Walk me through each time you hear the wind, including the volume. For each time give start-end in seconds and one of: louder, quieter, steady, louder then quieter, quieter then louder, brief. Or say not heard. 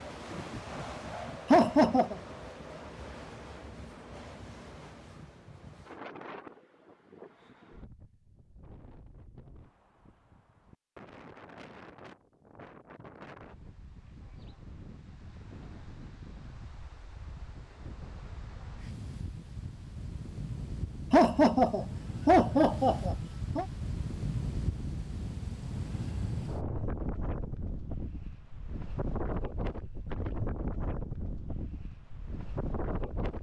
0.0-33.3 quieter then louder.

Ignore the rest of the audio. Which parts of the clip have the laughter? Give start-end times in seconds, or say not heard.
1.5-2.1, 21.1-23.6.